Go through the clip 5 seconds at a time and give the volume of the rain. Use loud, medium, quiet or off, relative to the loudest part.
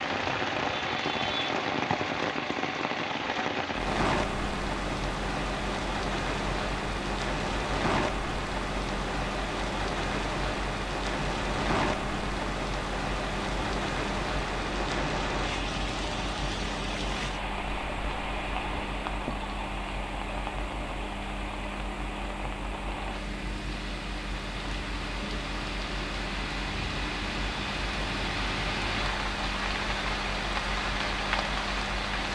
loud, loud, loud, loud, medium, loud, loud.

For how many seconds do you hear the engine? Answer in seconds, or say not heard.
32 s.